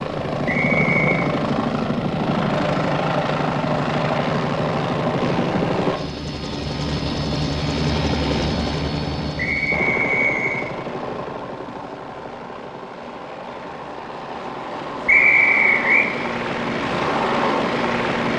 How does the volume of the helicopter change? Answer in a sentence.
The loudness of the helicopter goes down, then up.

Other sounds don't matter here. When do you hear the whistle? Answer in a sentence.
You can hear the whistle from 0.5 to 1.2 s, from 9.3 to 10.6 s and from 15.1 to 16.1 s.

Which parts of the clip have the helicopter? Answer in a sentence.
The helicopter can be heard from 0.0 to 18.3 s.